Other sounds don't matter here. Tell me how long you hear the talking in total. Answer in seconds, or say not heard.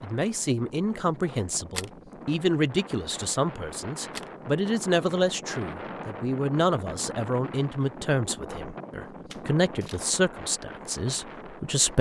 12 s.